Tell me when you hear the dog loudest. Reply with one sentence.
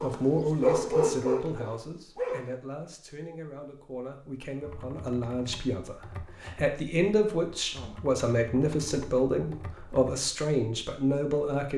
The loudest moment of the dog is at 1 second.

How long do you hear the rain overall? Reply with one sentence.
You can't hear the rain here.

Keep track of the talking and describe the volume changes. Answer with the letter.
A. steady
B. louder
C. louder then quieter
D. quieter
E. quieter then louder
E.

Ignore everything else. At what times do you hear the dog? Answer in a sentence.
You can hear the dog from 0.0 to 2.5 s.